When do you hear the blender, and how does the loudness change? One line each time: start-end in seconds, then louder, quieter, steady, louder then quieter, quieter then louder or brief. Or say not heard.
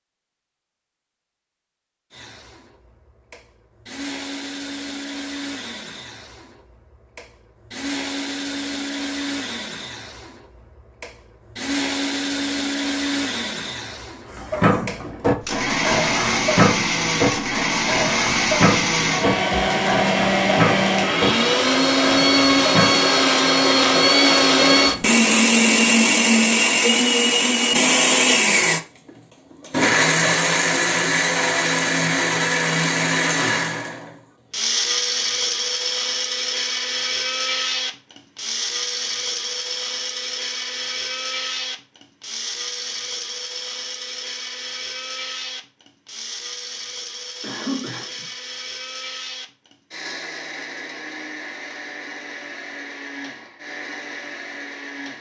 2.1-55.1 louder then quieter.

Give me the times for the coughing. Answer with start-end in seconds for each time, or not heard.
47.4-48.2.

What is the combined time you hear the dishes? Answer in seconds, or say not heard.
9 s.